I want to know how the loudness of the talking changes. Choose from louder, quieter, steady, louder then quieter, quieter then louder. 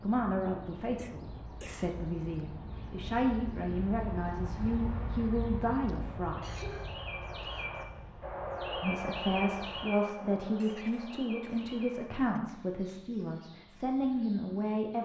steady.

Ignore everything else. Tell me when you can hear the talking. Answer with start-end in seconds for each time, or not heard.
0.0-6.8, 8.8-15.0.